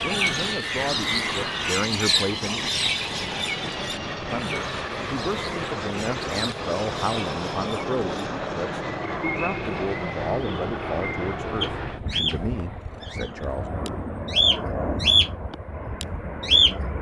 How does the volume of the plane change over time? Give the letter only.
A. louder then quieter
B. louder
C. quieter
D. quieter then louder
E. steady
E.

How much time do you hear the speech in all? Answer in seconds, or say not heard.
12 s.